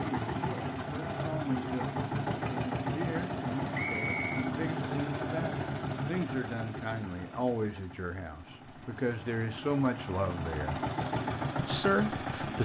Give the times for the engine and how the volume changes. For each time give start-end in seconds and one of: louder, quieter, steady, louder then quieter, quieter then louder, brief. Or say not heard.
0.0-12.6 quieter then louder.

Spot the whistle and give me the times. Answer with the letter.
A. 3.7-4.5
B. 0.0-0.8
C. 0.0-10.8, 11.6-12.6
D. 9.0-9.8
A.